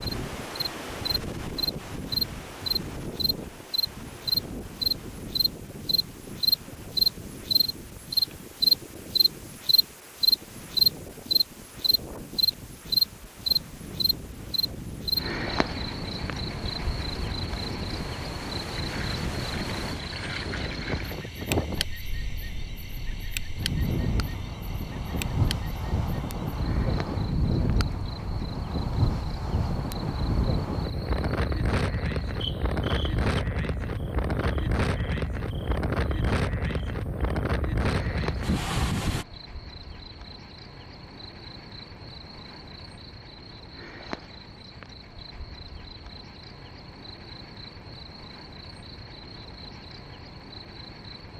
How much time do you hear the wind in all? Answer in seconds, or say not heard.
39 s.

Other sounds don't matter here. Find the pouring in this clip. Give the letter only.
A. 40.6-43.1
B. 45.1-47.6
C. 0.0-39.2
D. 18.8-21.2
D.